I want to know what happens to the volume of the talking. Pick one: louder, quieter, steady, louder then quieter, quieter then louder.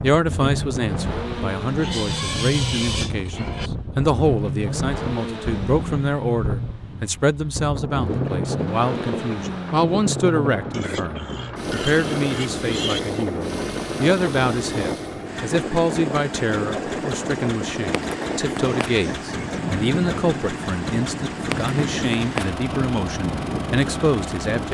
steady.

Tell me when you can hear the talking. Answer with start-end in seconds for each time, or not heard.
0.0-24.6.